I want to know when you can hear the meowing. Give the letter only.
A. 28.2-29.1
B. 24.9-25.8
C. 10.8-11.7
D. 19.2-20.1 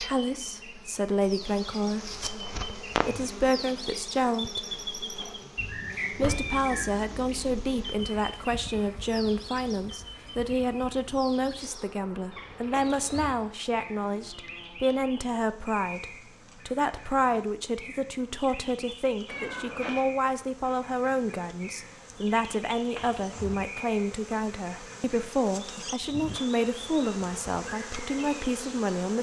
D.